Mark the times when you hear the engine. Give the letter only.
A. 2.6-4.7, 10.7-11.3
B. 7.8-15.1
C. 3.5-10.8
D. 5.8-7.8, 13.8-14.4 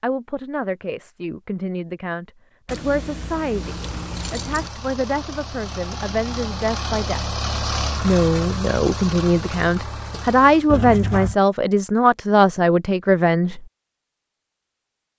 C.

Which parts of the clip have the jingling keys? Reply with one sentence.
The jingling keys can be heard from 2.6 to 4.7 s and from 10.7 to 11.3 s.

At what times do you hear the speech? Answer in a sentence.
You can hear the speech from 0.0 to 7.2 s and from 8.0 to 13.7 s.